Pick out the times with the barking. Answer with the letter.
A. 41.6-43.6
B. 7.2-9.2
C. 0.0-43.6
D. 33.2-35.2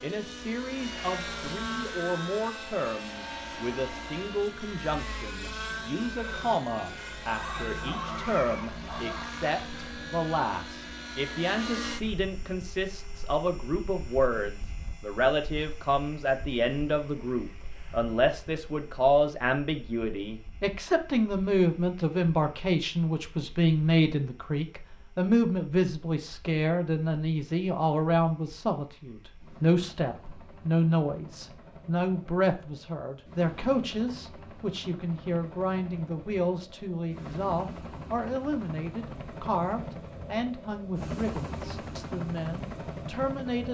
B.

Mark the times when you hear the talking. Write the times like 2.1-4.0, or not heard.
0.0-43.6.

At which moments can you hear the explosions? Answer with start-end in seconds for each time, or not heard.
not heard.